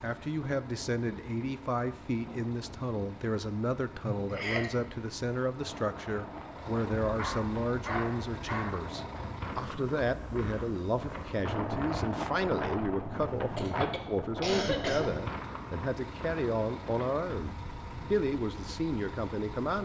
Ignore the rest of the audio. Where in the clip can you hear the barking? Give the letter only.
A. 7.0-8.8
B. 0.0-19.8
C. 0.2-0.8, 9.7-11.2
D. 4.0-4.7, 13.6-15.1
A.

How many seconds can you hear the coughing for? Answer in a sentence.
The coughing can be heard for 2 seconds in total.